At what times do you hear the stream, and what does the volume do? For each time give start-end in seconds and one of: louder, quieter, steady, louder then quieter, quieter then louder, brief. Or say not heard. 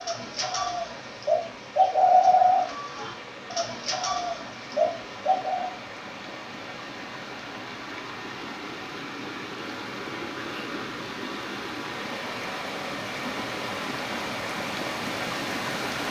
0.0-16.0 louder.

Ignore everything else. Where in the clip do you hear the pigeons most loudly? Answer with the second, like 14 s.
2 s.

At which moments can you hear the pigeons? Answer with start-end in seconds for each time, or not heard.
0.0-5.7.